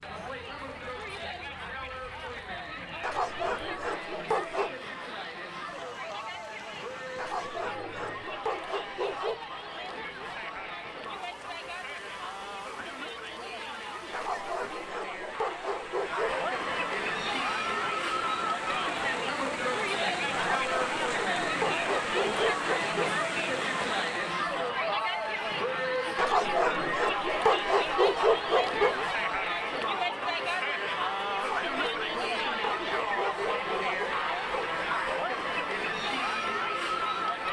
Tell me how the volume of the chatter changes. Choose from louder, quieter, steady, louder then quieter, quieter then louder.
louder.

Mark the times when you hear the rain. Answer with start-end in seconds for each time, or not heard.
0.0-24.4.